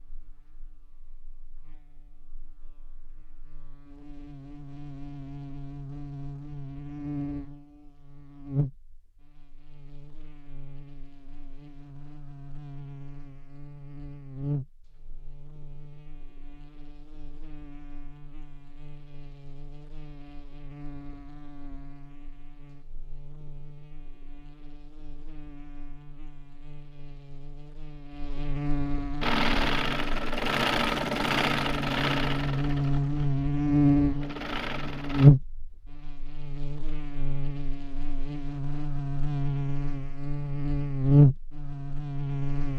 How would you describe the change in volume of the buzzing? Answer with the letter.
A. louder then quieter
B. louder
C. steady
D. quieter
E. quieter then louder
E.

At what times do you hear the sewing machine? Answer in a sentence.
The sewing machine can be heard from 29.2 to 33.2 s and from 34.1 to 35.3 s.